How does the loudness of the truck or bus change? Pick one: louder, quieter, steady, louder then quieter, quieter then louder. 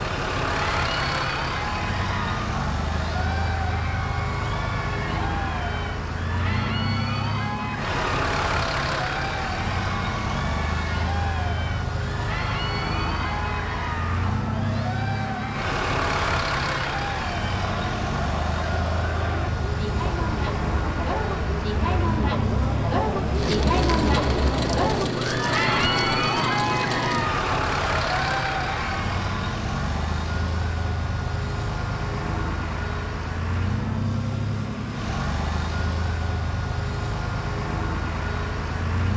steady.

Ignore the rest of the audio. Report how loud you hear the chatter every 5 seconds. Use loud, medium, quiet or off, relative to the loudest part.
medium, medium, medium, medium, loud, loud, off, off.